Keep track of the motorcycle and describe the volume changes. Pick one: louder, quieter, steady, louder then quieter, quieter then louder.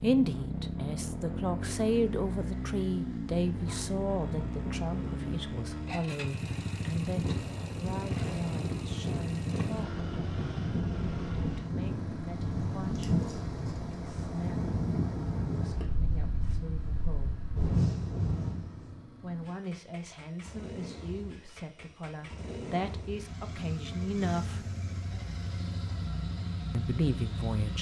quieter then louder.